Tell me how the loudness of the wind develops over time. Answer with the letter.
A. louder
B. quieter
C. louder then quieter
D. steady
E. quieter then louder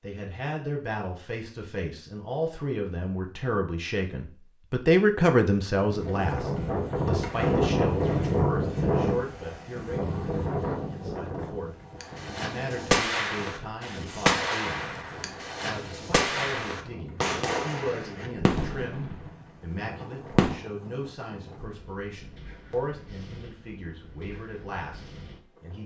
B.